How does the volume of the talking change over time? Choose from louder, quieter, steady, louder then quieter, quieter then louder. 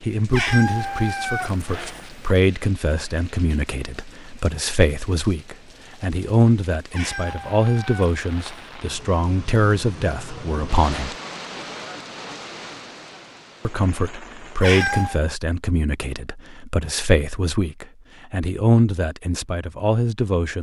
steady.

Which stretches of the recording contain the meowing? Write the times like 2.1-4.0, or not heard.
0.3-2.4, 6.9-8.7, 14.6-15.2.